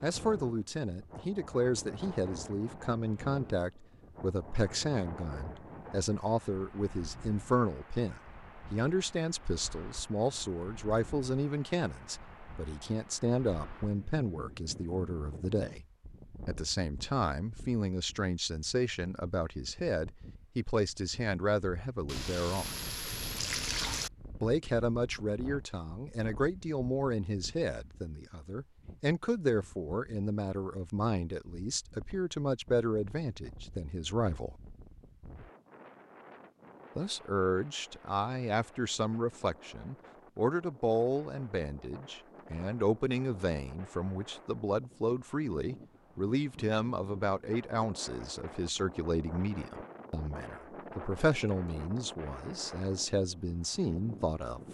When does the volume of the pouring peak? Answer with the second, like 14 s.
24 s.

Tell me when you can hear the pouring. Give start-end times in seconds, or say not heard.
22.1-24.1.